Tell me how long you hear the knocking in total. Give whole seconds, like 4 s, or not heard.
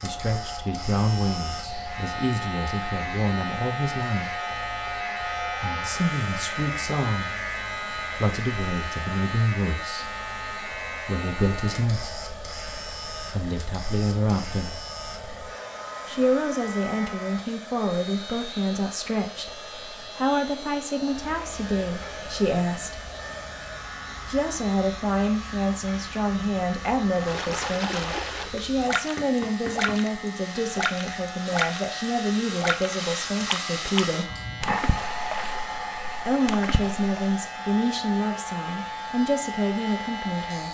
2 s.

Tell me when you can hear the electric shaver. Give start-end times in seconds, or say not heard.
0.0-40.7.